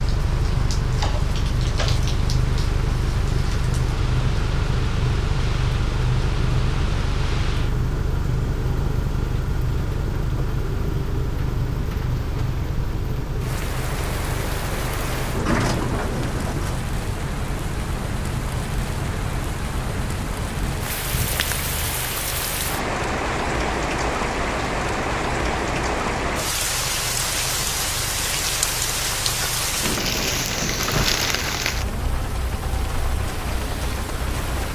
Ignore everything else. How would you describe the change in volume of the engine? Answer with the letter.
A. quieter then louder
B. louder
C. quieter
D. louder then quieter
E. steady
C.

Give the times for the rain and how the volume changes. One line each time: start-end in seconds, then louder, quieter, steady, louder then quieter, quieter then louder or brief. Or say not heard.
0.0-34.7 louder.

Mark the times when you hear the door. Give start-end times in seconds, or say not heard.
1.0-2.1, 15.3-16.9, 29.8-31.2.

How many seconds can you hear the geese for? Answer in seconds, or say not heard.
not heard.